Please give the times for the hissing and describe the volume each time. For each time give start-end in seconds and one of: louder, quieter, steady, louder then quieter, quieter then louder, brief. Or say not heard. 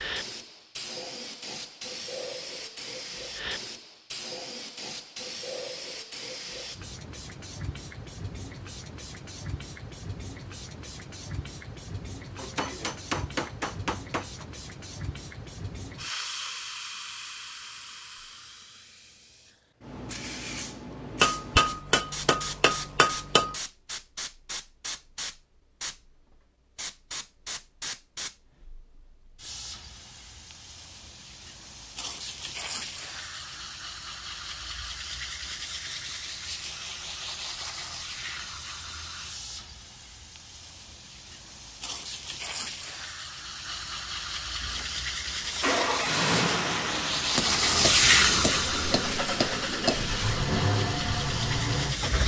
0.0-52.2 louder.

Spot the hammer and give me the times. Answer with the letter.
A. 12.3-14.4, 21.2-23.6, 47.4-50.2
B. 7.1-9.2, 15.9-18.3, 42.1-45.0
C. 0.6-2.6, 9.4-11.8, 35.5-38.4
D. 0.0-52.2
A.